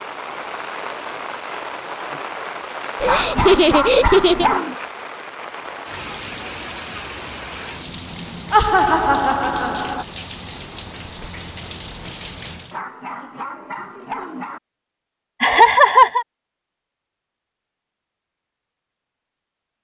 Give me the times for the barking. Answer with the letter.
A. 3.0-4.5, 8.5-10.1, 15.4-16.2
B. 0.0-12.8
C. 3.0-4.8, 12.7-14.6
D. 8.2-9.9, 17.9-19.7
C.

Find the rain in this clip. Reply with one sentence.
You can hear the rain from 0.0 to 12.8 s.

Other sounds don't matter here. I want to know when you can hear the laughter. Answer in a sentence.
The laughter can be heard from 3.0 to 4.5 s, from 8.5 to 10.1 s and from 15.4 to 16.2 s.